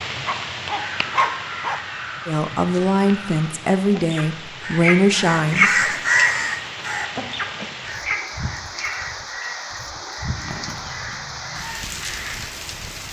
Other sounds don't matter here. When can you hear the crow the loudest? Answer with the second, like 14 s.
6 s.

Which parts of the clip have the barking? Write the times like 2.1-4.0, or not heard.
0.1-1.8.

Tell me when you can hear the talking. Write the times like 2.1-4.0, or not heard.
2.2-5.9.